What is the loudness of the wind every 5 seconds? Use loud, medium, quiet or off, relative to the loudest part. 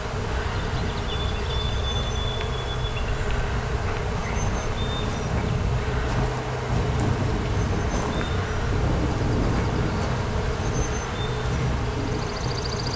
medium, loud, loud.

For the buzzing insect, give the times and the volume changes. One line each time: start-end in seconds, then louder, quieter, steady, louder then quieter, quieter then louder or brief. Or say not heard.
0.0-12.9 steady.